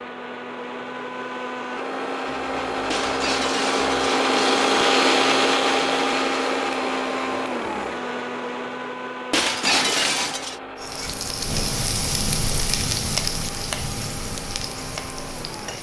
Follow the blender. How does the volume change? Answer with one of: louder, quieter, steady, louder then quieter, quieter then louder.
louder then quieter.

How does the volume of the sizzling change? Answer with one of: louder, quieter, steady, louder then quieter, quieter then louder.
quieter.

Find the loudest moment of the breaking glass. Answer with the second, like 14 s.
10 s.